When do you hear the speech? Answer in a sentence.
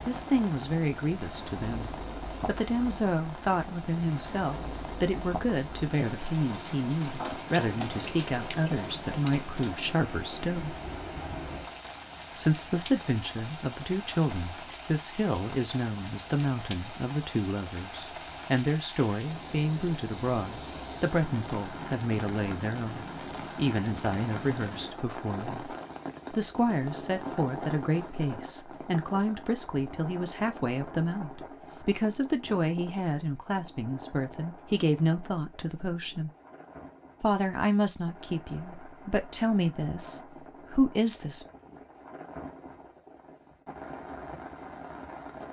You can hear the speech from 0.1 to 10.8 s, from 12.3 to 36.3 s and from 37.2 to 41.5 s.